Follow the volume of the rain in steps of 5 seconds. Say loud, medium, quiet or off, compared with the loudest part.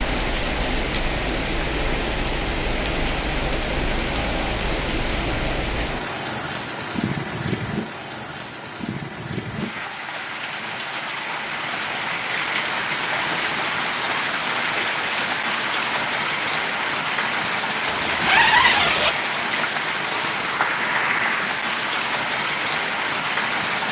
loud, medium, loud, loud, loud.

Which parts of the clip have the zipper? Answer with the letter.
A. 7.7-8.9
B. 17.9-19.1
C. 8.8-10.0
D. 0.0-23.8
B.